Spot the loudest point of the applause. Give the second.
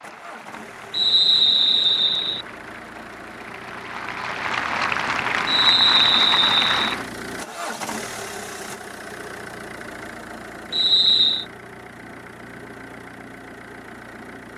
6 s.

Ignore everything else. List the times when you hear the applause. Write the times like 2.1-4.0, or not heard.
0.0-7.1.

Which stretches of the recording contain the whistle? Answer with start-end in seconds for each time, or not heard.
0.9-2.5, 5.5-7.0, 10.7-11.4.